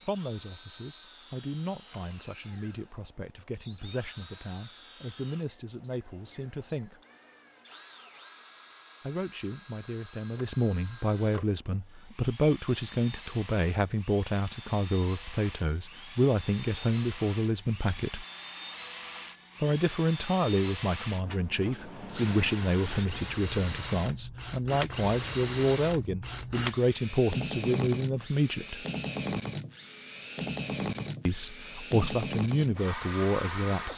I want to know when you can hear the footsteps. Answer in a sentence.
You can't hear the footsteps here.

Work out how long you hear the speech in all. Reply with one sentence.
The speech can be heard for 28 seconds in total.